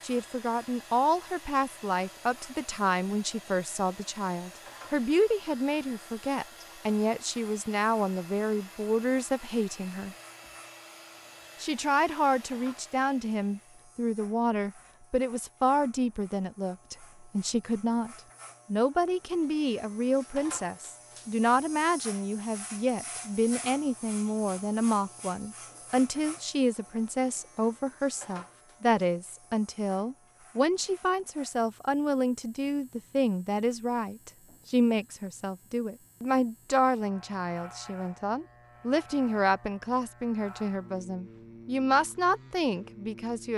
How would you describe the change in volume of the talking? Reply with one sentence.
The loudness of the talking stays about the same.